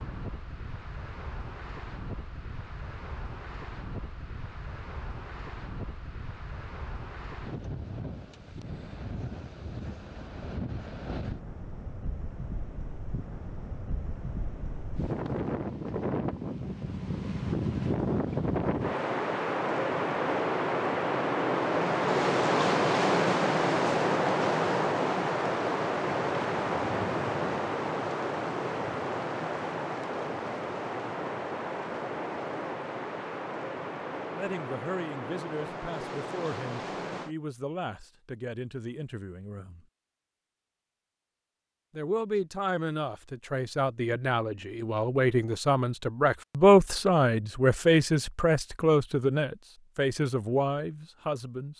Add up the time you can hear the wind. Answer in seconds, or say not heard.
37 s.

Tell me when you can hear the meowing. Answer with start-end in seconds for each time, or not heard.
not heard.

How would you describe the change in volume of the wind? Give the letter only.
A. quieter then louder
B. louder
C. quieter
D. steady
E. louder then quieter
E.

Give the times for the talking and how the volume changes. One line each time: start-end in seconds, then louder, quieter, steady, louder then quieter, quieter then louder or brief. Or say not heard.
34.3-39.9 steady
42.0-51.7 louder then quieter.